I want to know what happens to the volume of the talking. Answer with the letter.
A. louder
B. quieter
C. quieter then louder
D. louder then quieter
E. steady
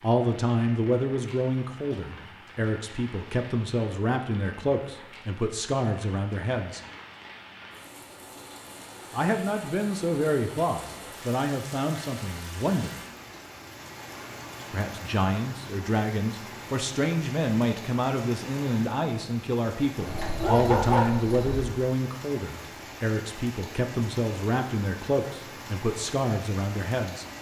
E.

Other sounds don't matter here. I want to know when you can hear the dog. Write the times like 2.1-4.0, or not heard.
20.1-21.6.